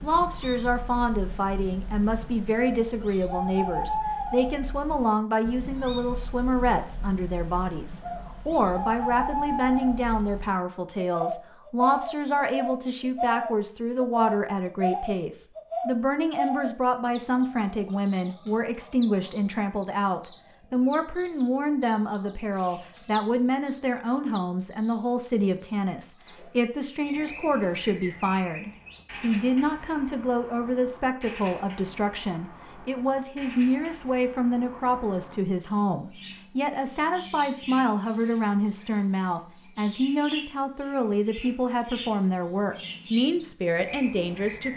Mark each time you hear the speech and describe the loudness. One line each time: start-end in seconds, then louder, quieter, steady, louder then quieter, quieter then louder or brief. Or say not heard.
0.0-44.7 steady.